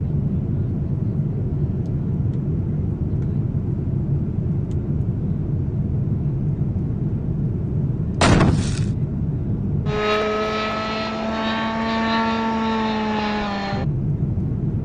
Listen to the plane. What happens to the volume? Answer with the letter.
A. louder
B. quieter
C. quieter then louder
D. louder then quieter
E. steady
E.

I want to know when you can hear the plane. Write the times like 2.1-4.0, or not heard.
0.0-14.7.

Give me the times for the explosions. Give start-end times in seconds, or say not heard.
8.2-8.9.